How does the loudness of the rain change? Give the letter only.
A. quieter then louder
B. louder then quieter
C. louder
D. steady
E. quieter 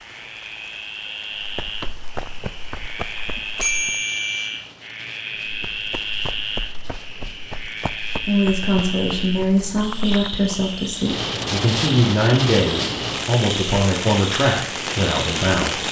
C.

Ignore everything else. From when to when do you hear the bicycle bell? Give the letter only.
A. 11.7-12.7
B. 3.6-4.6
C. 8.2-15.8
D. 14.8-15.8
B.